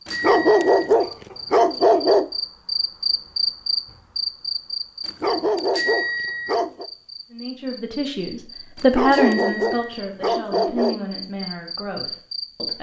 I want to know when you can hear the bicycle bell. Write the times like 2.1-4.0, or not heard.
0.1-0.9, 5.8-6.5, 9.1-9.9.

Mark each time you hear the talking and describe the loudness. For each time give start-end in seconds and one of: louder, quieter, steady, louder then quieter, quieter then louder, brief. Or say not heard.
7.3-12.7 louder then quieter.